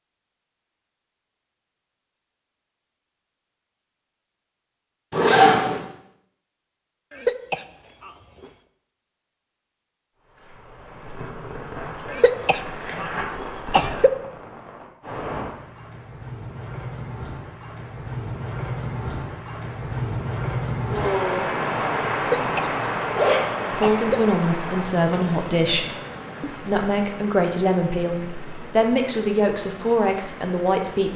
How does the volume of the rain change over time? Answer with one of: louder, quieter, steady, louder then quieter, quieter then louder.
louder then quieter.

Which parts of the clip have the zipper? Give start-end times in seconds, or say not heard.
5.1-5.8, 11.8-13.2, 22.4-23.4.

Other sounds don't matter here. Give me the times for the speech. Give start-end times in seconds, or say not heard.
23.6-31.1.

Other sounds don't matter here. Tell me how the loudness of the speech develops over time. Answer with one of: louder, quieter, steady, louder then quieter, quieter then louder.
steady.